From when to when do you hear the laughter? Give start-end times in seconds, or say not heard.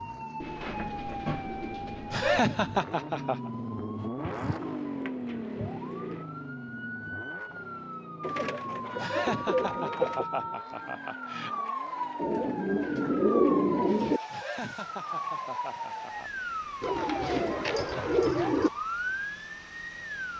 2.1-3.5, 8.9-11.6, 14.3-16.4.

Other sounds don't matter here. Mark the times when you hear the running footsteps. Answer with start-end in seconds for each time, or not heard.
not heard.